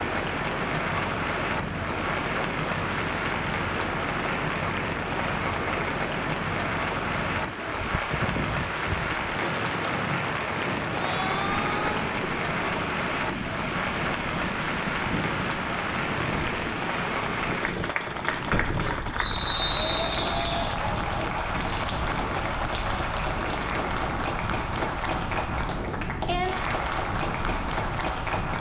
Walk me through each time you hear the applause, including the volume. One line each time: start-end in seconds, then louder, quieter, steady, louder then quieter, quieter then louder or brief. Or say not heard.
0.0-28.5 steady.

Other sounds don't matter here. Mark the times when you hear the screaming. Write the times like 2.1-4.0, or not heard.
10.9-12.1.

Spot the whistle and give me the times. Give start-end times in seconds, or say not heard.
19.1-20.5.